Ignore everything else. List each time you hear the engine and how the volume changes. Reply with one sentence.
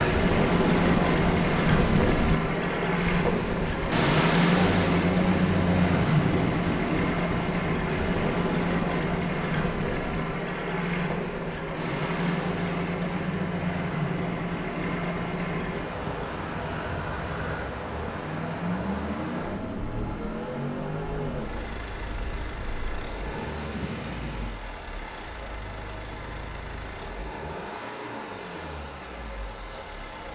The engine can be heard from 0.0 to 30.3 s, getting quieter.